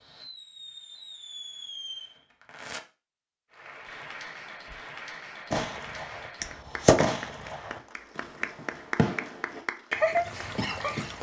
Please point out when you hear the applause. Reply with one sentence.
You can hear the applause from 3.5 to 11.1 s.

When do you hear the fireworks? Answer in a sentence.
The fireworks can be heard from 0.0 to 2.8 s and from 5.5 to 11.1 s.